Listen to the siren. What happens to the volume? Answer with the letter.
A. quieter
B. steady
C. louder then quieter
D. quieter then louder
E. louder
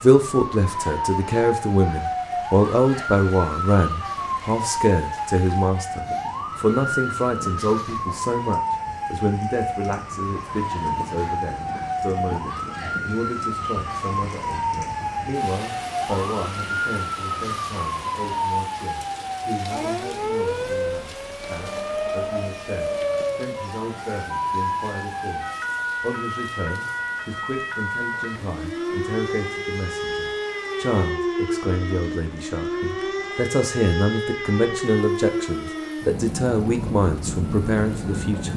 B.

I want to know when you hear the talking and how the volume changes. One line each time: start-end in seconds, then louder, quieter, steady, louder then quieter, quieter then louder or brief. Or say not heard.
0.0-38.5 quieter then louder.